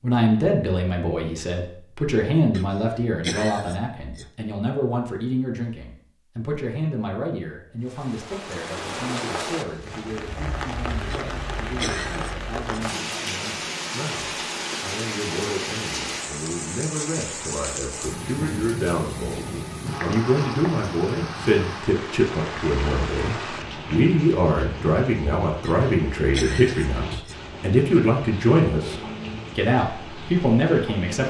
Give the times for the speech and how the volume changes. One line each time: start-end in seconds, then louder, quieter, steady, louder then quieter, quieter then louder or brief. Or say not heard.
0.0-31.2 quieter then louder.